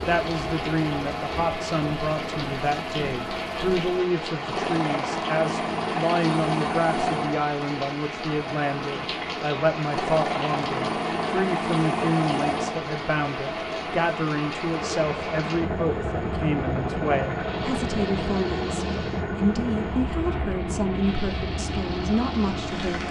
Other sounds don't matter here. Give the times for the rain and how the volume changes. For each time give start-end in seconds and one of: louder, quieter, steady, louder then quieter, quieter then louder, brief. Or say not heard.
0.0-23.0 steady.